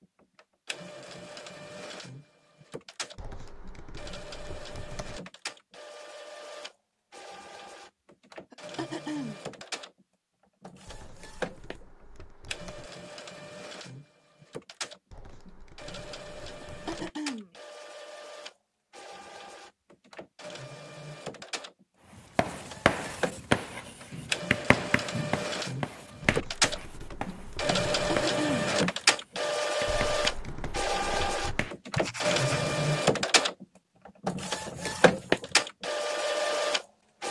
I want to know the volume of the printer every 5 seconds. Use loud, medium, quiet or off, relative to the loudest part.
quiet, quiet, quiet, quiet, medium, loud, loud, loud.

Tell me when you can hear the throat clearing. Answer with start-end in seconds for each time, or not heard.
8.5-9.4, 16.6-17.5, 28.1-28.7.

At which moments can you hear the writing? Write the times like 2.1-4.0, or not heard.
22.4-32.8.